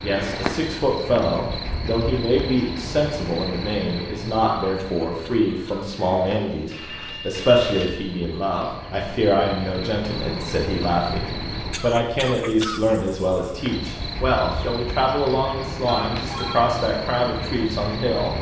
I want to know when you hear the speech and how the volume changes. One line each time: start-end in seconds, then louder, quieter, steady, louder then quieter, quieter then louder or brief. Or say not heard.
0.0-18.3 steady.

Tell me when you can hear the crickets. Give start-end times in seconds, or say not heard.
0.0-18.3.